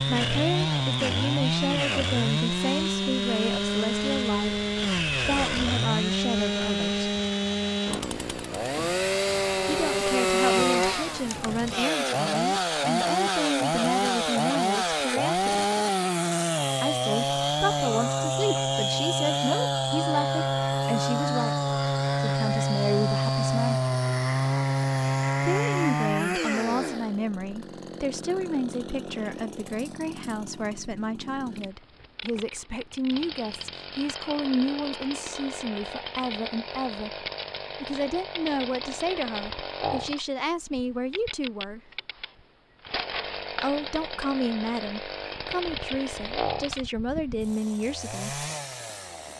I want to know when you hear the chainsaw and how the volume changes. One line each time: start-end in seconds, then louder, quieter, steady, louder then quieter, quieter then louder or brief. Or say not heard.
0.0-49.3 quieter.